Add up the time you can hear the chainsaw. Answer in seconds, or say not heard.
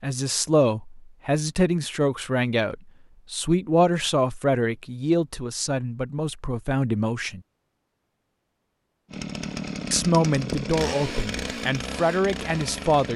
4 s.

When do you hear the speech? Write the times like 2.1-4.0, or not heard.
0.0-7.4, 9.9-13.1.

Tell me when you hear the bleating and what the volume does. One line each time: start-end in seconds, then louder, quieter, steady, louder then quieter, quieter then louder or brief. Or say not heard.
not heard.